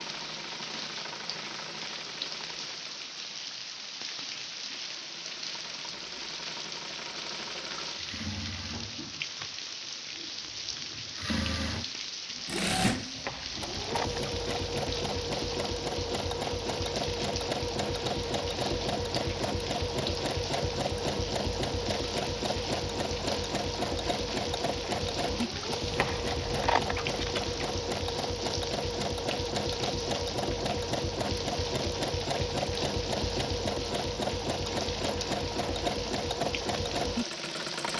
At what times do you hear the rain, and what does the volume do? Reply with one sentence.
You can hear the rain from 0.0 to 37.9 s, at a steady volume.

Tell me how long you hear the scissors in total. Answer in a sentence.
The scissors can be heard for 3 seconds in total.